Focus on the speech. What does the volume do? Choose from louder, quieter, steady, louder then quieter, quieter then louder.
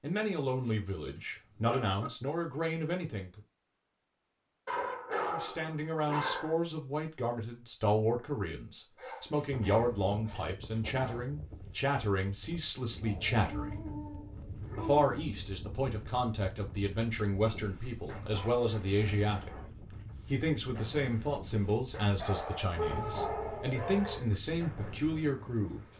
steady.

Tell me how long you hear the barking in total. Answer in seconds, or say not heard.
12 s.